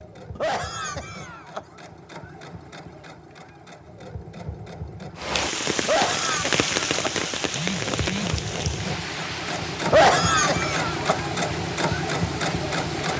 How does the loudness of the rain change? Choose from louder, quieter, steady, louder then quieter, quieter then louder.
quieter.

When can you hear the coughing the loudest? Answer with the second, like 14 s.
10 s.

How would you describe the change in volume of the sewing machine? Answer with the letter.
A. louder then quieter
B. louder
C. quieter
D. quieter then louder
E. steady
B.